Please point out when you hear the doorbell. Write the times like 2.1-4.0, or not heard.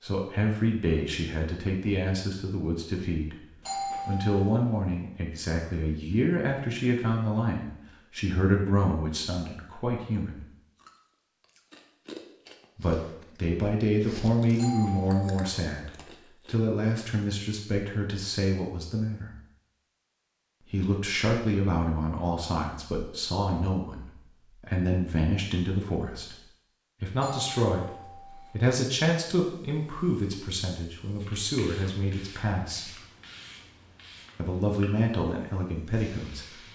3.6-4.7, 14.6-15.5, 27.2-28.6.